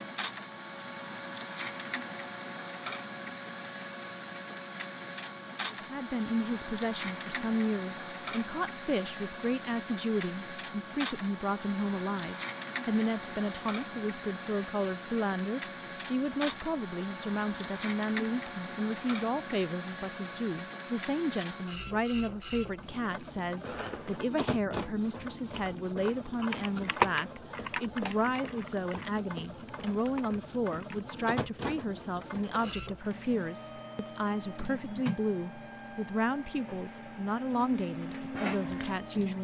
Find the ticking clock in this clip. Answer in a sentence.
You can't hear the ticking clock here.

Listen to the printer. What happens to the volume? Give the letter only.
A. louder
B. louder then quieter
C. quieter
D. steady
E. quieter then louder
D.